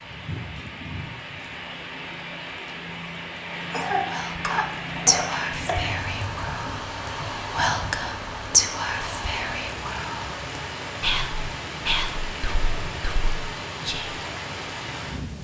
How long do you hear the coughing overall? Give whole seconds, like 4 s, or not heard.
2 s.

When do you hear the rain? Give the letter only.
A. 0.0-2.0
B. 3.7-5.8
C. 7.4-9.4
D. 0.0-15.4
D.